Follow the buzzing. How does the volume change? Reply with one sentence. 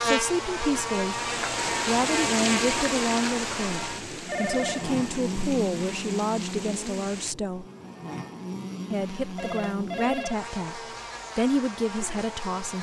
The volume of the buzzing goes down.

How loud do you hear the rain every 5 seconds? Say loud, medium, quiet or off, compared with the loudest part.
loud, medium, off.